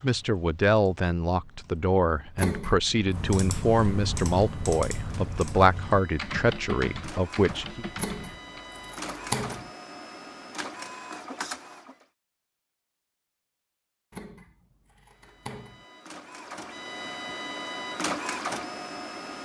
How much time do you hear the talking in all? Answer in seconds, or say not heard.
8 s.